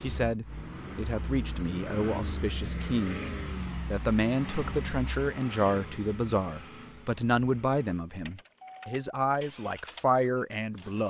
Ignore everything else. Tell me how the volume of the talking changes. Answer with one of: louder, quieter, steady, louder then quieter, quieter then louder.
steady.